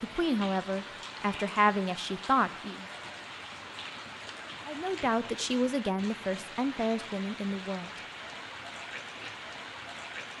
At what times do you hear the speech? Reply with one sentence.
You can hear the speech from 0.0 to 2.9 s and from 4.7 to 7.9 s.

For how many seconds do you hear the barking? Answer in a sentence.
You can't hear the barking here.